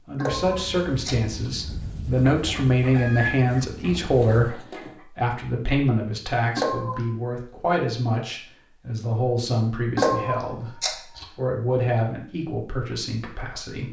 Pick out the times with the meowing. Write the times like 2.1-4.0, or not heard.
0.2-1.5, 6.5-7.0, 9.9-11.2.